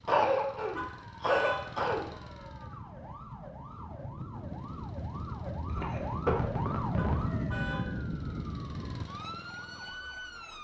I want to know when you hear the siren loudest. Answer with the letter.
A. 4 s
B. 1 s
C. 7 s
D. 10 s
C.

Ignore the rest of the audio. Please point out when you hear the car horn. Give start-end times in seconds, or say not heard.
0.8-1.8, 7.0-8.0.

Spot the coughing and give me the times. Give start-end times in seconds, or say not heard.
0.1-2.0, 5.7-7.3.